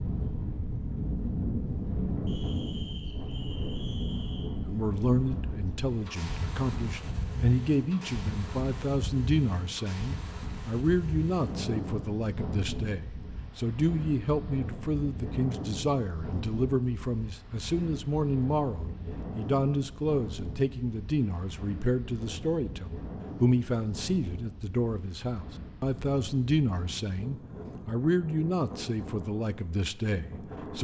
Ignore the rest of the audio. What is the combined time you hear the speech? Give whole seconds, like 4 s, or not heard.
26 s.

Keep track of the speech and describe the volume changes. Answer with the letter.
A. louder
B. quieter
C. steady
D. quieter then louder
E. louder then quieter
C.